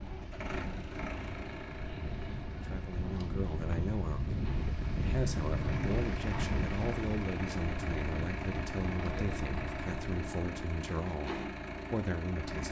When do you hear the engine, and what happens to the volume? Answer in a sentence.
You can hear the engine from 0.0 to 12.6 s, getting quieter then louder.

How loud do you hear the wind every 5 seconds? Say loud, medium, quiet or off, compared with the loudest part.
loud, loud, off.